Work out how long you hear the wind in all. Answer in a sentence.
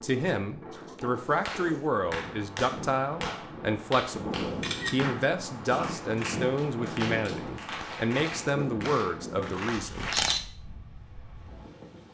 The wind can be heard for 12 seconds in total.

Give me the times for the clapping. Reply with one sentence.
The clapping can be heard from 0.8 to 10.2 s.